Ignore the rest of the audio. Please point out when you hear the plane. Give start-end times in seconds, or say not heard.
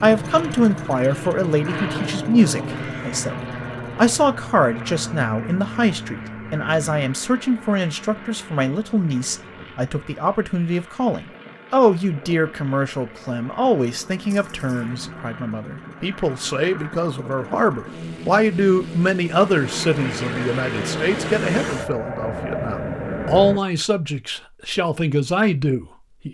0.0-23.6.